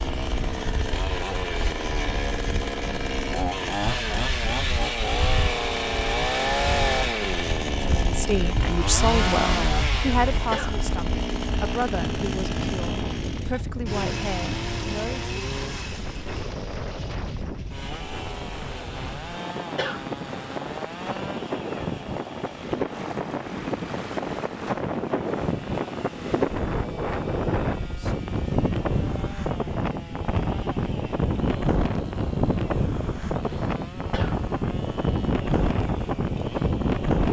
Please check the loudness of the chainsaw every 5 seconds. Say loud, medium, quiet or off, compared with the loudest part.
loud, loud, medium, medium, quiet, quiet, quiet, quiet.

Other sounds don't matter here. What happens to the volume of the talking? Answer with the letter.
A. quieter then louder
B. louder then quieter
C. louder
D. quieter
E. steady
D.